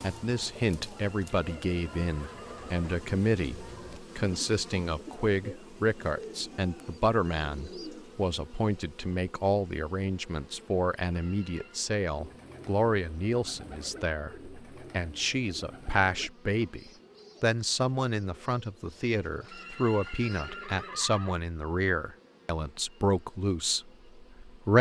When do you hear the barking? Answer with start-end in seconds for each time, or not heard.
not heard.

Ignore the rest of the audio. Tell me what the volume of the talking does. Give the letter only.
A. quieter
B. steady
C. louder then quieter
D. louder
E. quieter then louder
B.